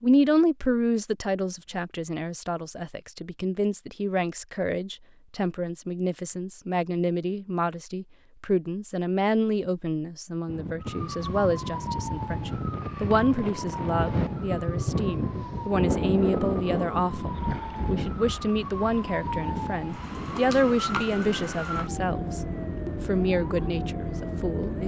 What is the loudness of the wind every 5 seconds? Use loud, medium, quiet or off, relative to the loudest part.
off, off, loud, loud, medium.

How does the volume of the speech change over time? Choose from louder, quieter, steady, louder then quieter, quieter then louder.
steady.